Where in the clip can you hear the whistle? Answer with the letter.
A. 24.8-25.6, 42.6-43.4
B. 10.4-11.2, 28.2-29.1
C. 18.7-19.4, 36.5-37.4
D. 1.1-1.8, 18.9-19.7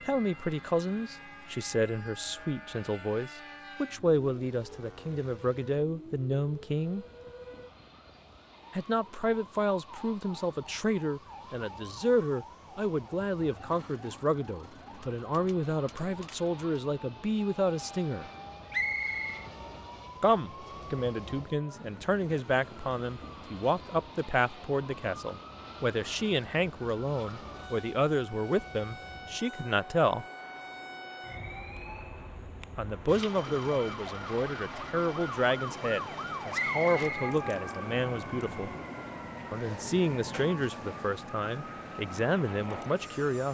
C.